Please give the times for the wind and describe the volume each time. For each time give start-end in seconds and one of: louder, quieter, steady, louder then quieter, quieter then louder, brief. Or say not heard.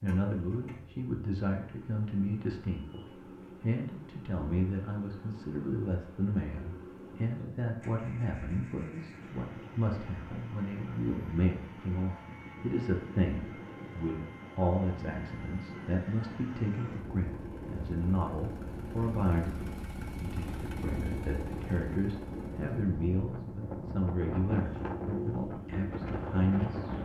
7.0-26.9 louder.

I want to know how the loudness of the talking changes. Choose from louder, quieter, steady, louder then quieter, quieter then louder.
steady.